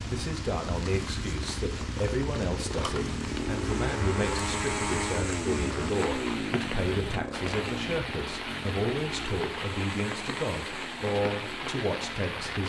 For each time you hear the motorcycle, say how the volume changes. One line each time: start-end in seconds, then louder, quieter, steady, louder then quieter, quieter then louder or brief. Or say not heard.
0.0-12.6 louder then quieter.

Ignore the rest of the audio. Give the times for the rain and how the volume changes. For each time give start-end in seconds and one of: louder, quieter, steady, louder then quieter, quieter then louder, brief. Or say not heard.
0.0-12.6 steady.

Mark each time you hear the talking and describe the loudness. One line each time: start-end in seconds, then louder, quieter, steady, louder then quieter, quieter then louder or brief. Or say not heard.
0.1-12.6 steady.